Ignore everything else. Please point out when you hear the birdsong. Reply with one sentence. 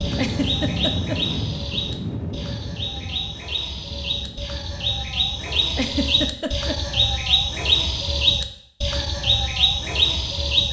You can hear the birdsong from 0.0 to 10.6 s.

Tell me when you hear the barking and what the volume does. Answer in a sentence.
You can't hear the barking here.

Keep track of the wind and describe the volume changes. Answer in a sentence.
The loudness of the wind goes down.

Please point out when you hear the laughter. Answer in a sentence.
The laughter can be heard from 0.1 to 1.2 s and from 5.7 to 6.8 s.